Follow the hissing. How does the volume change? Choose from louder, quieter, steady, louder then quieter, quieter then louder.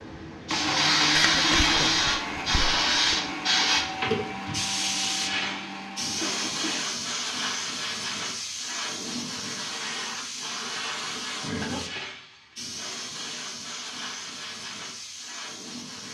quieter.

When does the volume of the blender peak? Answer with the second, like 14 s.
1 s.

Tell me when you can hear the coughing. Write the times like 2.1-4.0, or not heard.
1.1-3.1, 6.2-6.8, 11.6-12.1.